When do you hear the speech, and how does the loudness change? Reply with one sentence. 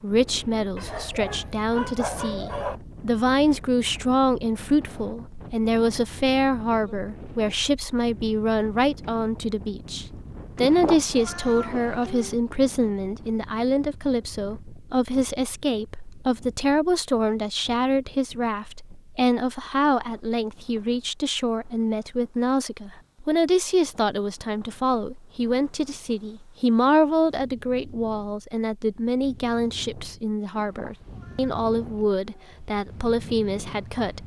You can hear the speech from 0.0 to 34.2 s, at a steady volume.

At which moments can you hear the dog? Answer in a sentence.
You can hear the dog from 0.8 to 2.8 s.